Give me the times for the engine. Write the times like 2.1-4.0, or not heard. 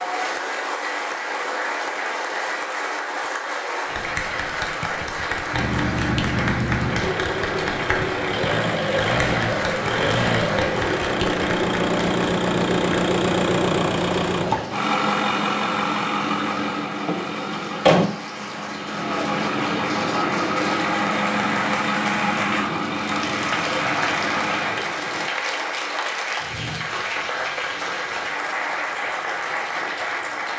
5.5-25.3.